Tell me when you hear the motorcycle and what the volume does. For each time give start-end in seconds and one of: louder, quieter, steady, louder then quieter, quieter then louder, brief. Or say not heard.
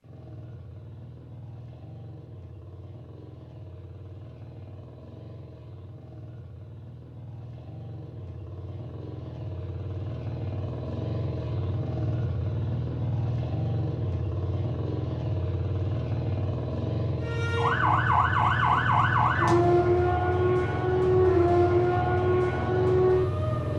0.0-23.7 louder.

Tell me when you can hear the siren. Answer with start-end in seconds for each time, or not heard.
17.2-23.7.